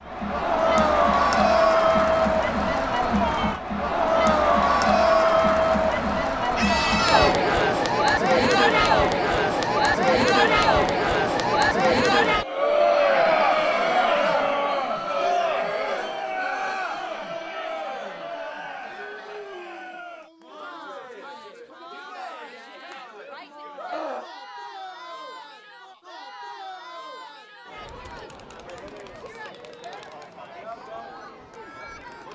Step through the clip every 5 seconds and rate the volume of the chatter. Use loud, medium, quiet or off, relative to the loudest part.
loud, loud, loud, medium, quiet, quiet, quiet.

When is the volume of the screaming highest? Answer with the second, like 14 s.
7 s.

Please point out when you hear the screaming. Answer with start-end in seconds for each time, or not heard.
6.5-7.3, 23.8-24.3.